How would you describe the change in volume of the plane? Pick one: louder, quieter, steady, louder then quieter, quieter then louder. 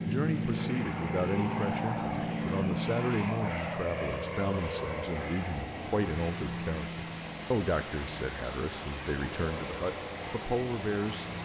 quieter.